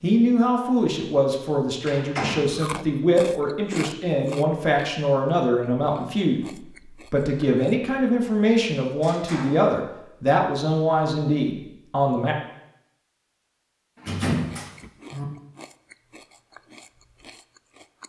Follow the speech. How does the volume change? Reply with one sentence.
The loudness of the speech stays about the same.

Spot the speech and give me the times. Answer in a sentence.
You can hear the speech from 0.0 to 12.3 s.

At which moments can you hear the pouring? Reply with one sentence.
The pouring can't be heard in this clip.